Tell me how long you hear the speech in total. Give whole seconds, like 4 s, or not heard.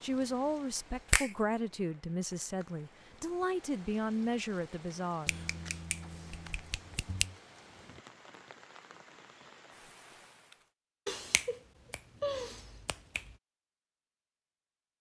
5 s.